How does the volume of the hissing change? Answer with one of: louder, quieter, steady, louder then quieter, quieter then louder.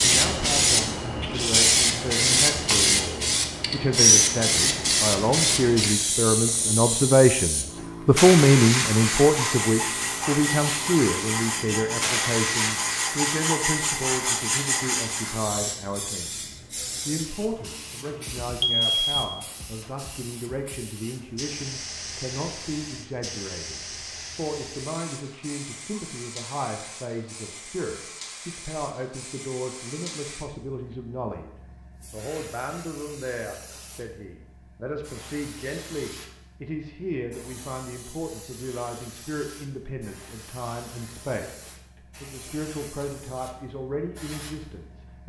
quieter.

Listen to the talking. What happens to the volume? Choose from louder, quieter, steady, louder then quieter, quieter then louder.
quieter.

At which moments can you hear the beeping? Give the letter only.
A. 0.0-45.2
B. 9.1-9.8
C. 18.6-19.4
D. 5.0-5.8
C.